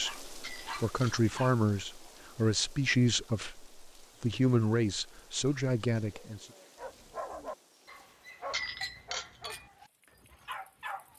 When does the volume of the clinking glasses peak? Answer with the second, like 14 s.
9 s.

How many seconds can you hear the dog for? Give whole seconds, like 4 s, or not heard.
6 s.